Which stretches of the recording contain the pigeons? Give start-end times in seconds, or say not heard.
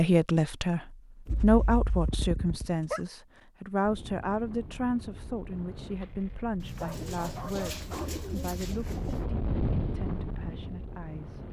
6.6-9.3.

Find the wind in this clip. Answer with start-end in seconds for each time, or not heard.
3.8-11.4.